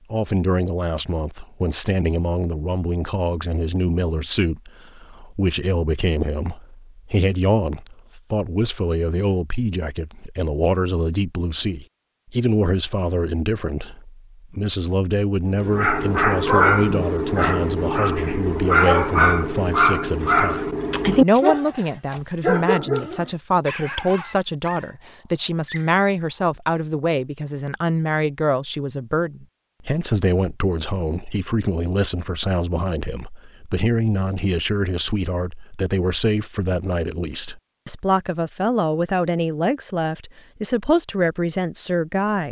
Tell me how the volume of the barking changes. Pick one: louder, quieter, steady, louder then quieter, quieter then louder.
quieter.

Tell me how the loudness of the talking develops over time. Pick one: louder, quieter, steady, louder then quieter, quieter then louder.
steady.